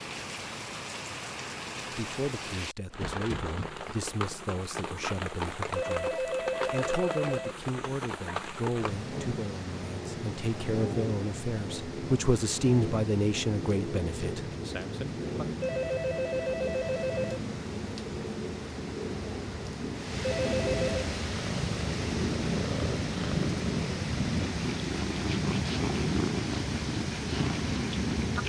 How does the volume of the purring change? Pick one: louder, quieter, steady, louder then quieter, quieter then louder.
steady.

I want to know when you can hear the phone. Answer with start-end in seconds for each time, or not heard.
5.8-7.5, 15.6-17.4, 20.2-21.1.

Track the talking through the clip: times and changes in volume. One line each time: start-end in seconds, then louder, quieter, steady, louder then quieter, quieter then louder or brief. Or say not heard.
1.9-15.4 louder.